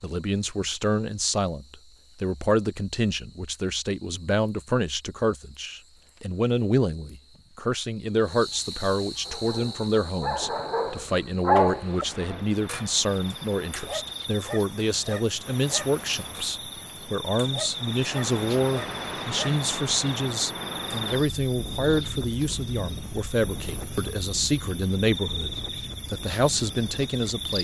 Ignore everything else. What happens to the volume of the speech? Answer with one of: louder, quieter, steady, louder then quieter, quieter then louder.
steady.